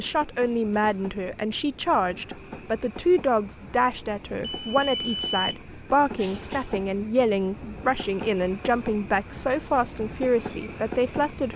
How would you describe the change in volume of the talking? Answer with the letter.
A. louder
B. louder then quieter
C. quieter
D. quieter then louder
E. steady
E.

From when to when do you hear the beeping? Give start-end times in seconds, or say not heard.
4.4-5.5.